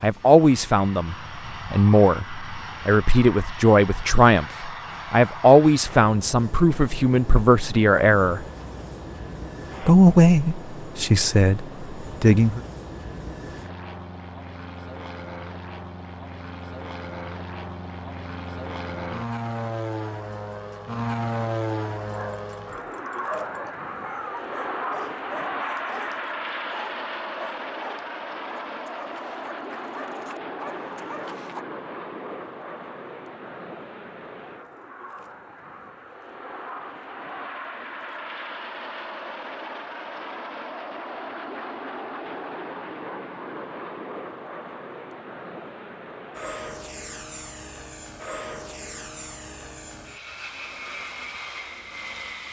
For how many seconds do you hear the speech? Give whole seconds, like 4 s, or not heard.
11 s.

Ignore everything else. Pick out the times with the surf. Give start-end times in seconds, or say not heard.
not heard.